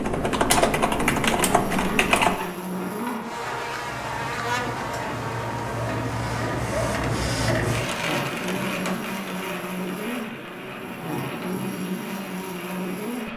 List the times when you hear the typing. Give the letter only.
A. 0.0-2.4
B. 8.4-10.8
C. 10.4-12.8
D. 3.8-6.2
A.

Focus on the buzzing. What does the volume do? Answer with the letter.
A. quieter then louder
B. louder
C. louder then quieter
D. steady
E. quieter
D.